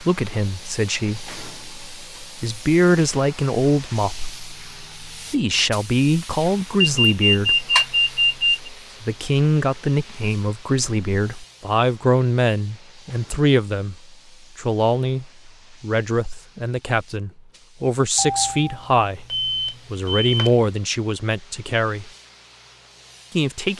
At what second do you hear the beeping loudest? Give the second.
8 s.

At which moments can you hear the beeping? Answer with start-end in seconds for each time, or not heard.
6.8-8.7, 18.1-20.7.